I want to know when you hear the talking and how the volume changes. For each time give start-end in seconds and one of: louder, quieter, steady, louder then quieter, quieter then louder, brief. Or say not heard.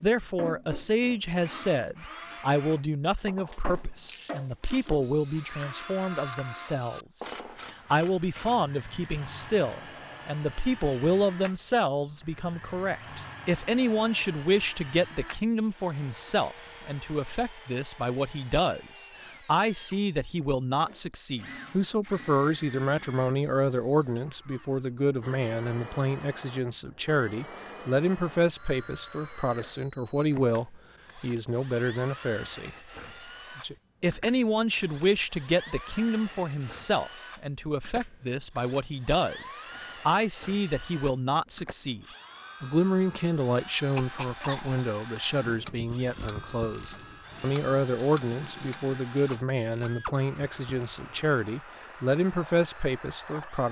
0.0-32.8 steady
33.5-53.6 steady.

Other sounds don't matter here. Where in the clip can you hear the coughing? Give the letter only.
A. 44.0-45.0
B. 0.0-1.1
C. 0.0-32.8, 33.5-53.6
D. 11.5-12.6
A.